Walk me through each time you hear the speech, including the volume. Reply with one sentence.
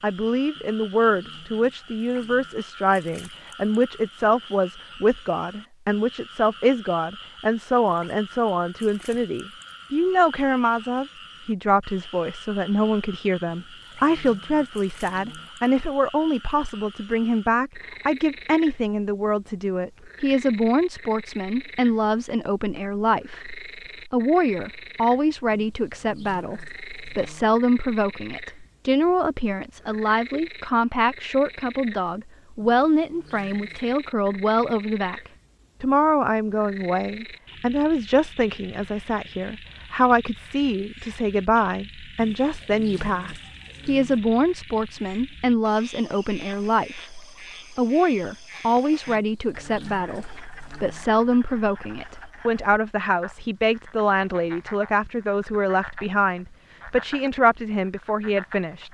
The speech can be heard from 0.0 to 58.8 s, at a steady volume.